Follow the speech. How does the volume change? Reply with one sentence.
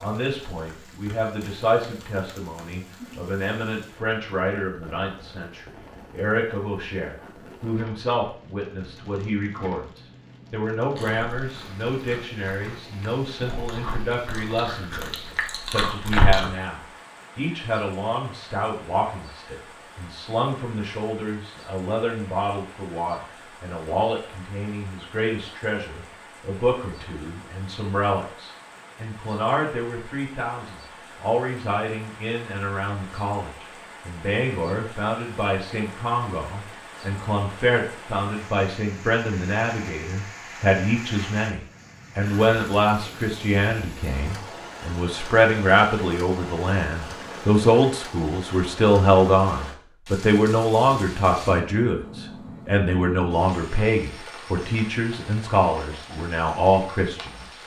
The volume of the speech goes up.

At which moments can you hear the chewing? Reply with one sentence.
You can hear the chewing from 10.9 to 16.4 s.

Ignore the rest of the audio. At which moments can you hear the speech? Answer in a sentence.
You can hear the speech from 0.0 to 57.5 s.